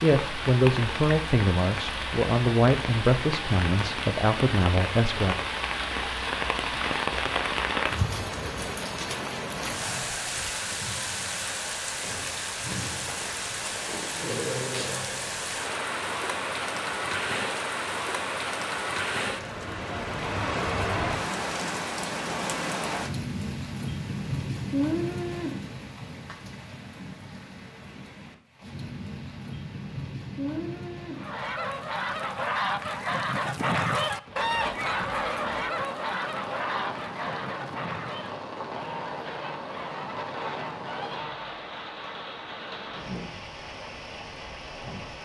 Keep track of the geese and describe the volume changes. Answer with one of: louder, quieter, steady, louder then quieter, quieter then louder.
quieter.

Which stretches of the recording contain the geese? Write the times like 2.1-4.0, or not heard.
31.1-41.6.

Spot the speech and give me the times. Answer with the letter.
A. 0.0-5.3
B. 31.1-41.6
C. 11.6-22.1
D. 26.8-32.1
A.